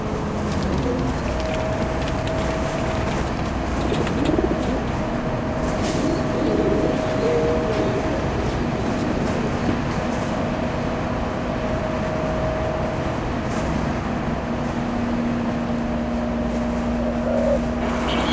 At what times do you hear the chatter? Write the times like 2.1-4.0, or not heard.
not heard.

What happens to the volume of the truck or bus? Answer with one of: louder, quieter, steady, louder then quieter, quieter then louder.
steady.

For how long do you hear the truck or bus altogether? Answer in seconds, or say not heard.
18 s.